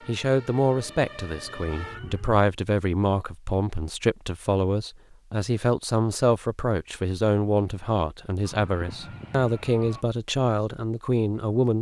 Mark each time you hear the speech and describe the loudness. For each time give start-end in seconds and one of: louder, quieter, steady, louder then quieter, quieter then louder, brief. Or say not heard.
0.1-11.7 steady.